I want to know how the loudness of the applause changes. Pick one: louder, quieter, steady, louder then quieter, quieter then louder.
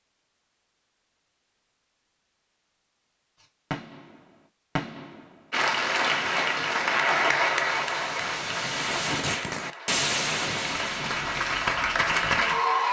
quieter then louder.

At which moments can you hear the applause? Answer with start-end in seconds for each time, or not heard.
5.5-12.8.